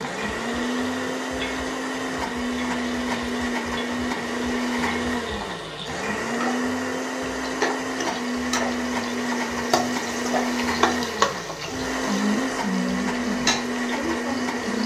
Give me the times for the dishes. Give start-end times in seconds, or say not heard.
not heard.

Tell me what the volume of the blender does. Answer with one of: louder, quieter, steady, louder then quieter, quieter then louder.
steady.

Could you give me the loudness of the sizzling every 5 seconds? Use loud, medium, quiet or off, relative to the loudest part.
medium, loud, loud.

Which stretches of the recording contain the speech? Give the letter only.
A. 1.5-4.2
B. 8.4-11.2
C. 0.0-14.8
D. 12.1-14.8
D.